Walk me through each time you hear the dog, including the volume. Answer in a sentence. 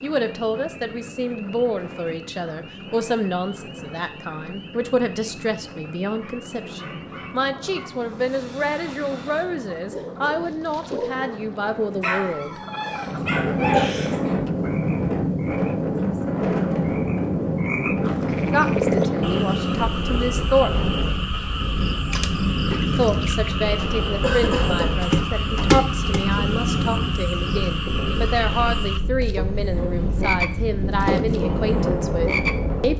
The dog can be heard from 6.2 to 13.8 s, getting louder.